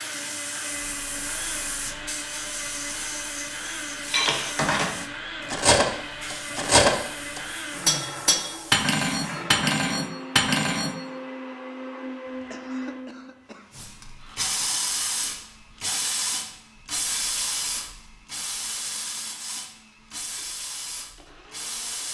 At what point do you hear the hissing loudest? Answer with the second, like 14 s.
15 s.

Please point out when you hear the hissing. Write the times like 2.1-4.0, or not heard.
0.0-9.4, 13.7-22.1.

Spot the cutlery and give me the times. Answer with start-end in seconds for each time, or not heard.
4.1-10.9.